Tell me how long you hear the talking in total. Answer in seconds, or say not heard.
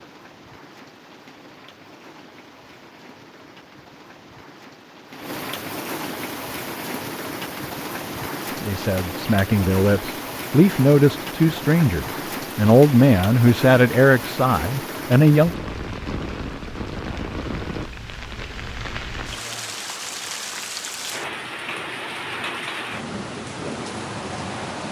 7 s.